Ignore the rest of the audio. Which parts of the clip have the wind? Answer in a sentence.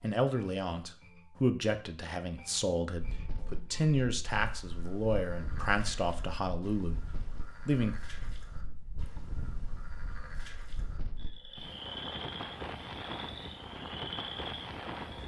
The wind can be heard from 3.0 to 15.2 s.